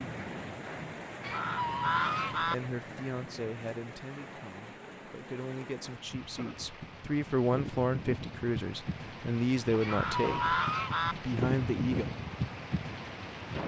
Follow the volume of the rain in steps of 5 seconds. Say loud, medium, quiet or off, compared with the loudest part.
medium, medium, loud.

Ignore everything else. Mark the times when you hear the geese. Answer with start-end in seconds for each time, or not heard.
1.2-2.5, 9.8-11.2.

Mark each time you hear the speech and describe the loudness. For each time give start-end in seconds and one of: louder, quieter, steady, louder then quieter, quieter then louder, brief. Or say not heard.
2.4-12.1 louder.